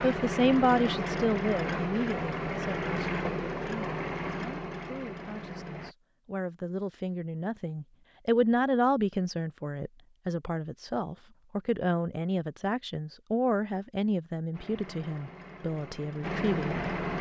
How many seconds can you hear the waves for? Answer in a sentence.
The waves can't be heard in this clip.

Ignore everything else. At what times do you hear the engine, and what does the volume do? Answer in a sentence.
You can hear the engine from 0.0 to 6.0 s, getting quieter; and briefly from 14.5 to 17.1 s.